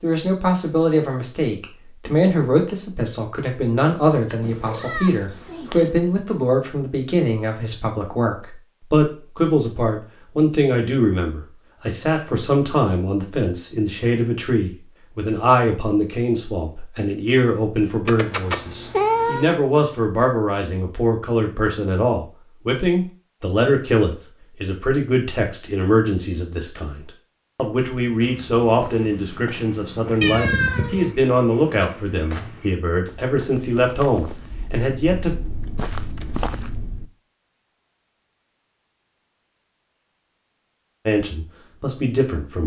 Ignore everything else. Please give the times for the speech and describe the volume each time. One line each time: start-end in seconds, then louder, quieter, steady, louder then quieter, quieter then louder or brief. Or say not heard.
0.0-35.4 steady
41.0-42.6 brief.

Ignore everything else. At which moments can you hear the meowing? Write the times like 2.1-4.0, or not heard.
4.4-5.9, 18.1-19.6, 30.2-31.1.